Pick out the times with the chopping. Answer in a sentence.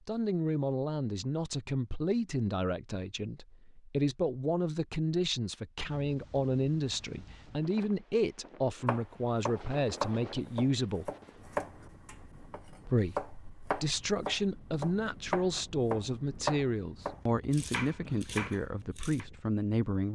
The chopping can be heard from 8.8 to 19.2 s.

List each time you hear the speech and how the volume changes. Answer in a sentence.
The speech can be heard from 0.1 to 11.1 s, at a steady volume; and from 12.8 to 20.0 s, at a steady volume.